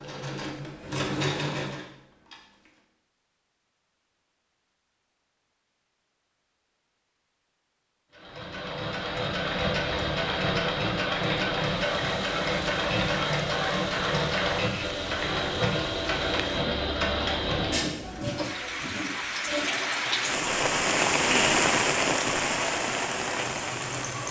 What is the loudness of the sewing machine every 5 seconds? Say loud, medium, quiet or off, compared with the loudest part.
medium, loud, loud, loud, medium.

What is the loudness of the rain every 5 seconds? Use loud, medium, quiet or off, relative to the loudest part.
off, off, quiet, medium, loud.